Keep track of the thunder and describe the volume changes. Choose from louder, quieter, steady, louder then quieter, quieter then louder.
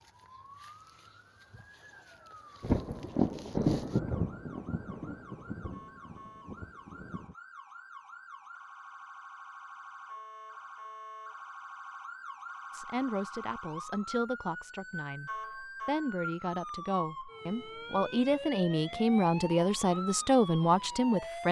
quieter.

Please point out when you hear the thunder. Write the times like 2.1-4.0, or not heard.
2.6-7.3.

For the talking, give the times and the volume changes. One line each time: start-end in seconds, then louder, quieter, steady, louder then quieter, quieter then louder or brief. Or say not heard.
12.7-21.4 louder.